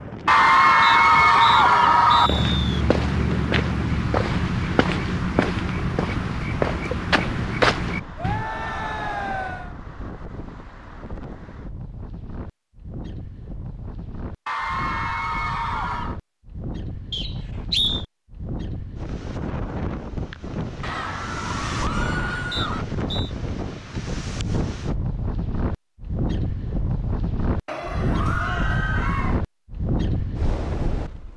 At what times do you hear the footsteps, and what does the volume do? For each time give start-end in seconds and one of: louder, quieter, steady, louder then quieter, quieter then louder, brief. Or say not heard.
0.8-8.5 louder.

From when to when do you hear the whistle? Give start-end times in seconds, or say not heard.
0.8-2.9, 17.1-18.1, 22.5-23.3.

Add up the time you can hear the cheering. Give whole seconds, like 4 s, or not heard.
9 s.